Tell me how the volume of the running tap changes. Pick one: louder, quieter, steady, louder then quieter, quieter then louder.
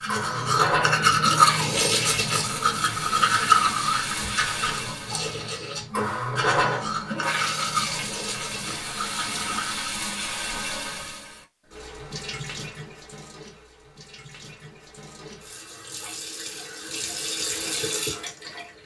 quieter then louder.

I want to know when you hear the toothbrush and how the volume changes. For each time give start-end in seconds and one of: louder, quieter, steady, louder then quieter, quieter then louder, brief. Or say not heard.
0.0-9.9 quieter.